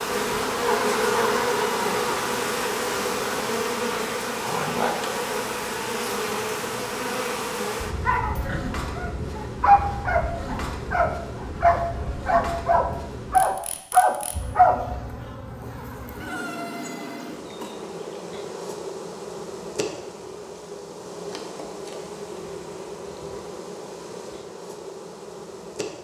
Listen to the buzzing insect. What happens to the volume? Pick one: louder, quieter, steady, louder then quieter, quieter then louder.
quieter.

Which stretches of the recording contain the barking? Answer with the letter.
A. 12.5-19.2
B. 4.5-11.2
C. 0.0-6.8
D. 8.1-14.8
D.